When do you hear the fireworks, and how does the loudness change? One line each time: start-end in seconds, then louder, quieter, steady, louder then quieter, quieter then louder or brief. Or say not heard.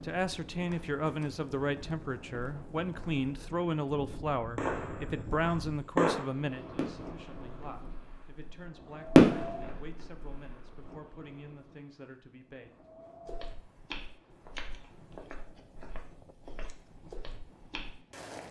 4.5-10.6 quieter then louder.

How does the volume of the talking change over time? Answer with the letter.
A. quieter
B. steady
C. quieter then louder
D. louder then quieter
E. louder
A.